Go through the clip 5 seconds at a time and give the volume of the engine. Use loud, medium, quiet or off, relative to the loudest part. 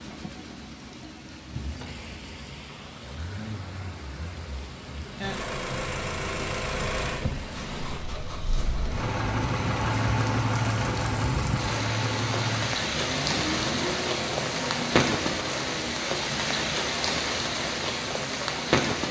quiet, loud, loud, medium.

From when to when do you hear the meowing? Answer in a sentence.
The meowing can't be heard in this clip.